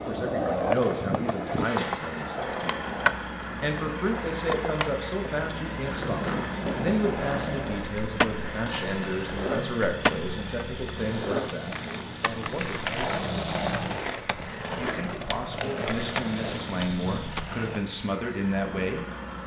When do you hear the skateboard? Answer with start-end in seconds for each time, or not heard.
0.0-17.9.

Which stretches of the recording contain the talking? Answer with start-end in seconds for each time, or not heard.
0.1-13.2, 14.8-19.1.